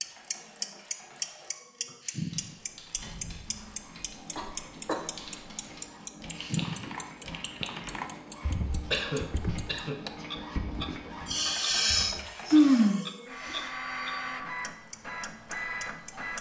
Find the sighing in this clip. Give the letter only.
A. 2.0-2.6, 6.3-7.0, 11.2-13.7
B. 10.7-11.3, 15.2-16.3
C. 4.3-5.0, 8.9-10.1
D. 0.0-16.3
A.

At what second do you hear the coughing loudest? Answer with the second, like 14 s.
9 s.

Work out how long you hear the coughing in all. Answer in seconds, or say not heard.
2 s.